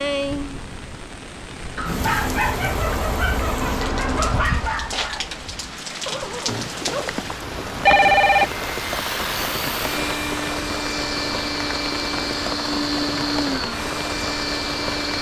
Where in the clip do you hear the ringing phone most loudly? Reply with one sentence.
The volume of the ringing phone peaks at 8 seconds.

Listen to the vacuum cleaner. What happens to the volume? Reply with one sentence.
The volume of the vacuum cleaner stays about the same.